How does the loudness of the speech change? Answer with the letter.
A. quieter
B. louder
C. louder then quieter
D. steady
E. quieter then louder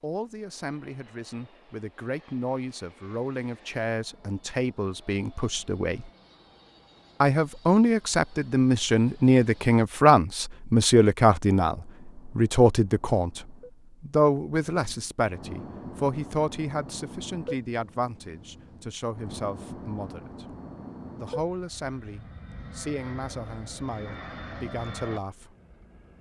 C.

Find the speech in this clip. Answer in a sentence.
You can hear the speech from 0.0 to 6.1 s, from 7.2 to 20.6 s and from 21.2 to 25.6 s.